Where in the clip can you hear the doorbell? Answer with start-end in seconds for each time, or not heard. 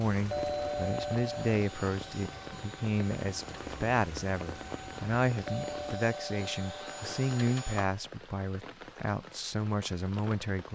0.3-1.6, 5.5-7.5.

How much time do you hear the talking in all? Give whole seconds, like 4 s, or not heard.
11 s.